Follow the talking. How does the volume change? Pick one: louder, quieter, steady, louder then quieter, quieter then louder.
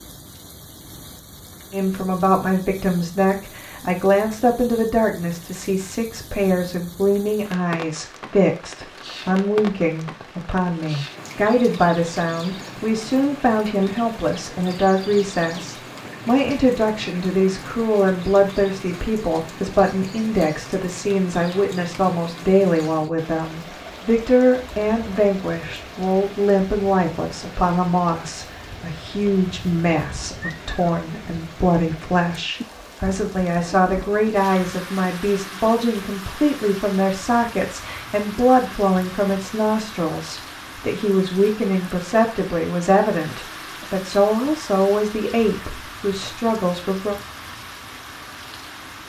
steady.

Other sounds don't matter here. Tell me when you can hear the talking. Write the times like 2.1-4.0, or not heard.
1.7-47.1.